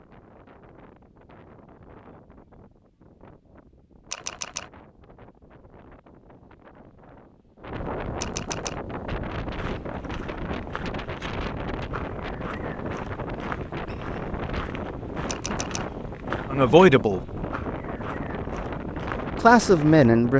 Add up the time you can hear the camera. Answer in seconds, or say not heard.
2 s.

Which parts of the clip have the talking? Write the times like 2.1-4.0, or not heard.
16.5-17.2, 19.4-20.3.